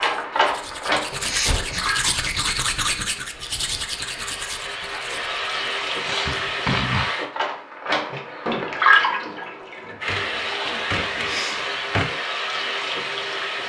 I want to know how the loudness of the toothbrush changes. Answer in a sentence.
The loudness of the toothbrush goes up, then down.